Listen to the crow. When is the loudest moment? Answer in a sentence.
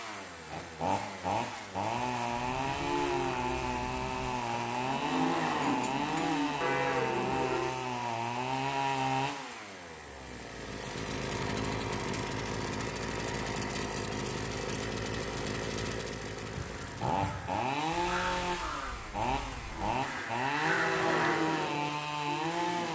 The loudest moment of the crow is at 21 seconds.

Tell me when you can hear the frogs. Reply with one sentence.
You can't hear the frogs here.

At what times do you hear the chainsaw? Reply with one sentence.
You can hear the chainsaw from 0.0 to 22.9 s.